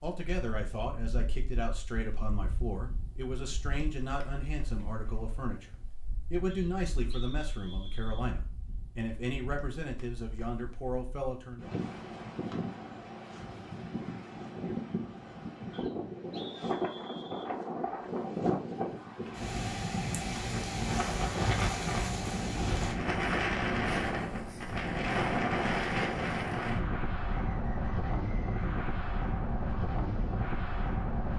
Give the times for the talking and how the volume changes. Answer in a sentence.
The talking can be heard from 0.0 to 11.7 s, at a steady volume.